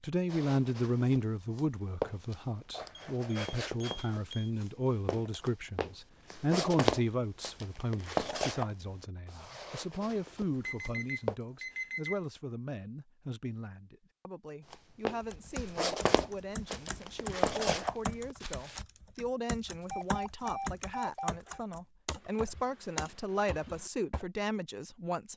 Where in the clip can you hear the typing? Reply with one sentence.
You can hear the typing from 15.2 to 24.2 s.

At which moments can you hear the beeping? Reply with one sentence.
The beeping can be heard from 3.0 to 4.5 s, from 10.6 to 12.2 s and from 19.8 to 21.6 s.